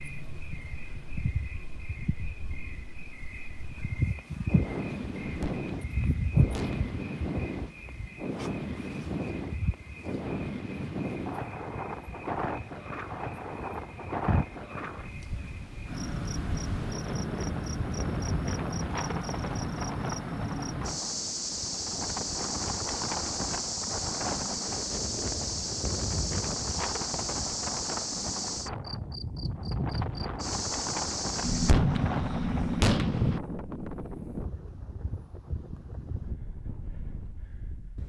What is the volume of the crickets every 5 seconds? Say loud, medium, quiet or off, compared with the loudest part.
loud, loud, medium, loud, loud, loud, loud, off.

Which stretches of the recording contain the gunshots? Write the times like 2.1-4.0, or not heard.
5.2-7.0, 31.4-33.4.